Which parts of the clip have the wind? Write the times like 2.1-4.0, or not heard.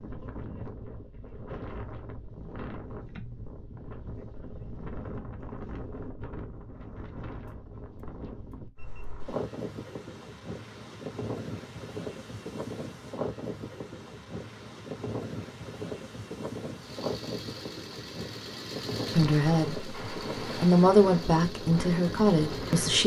0.0-23.0.